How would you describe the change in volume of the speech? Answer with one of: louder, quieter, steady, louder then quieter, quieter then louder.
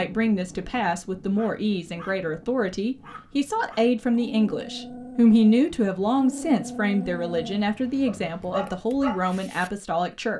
louder then quieter.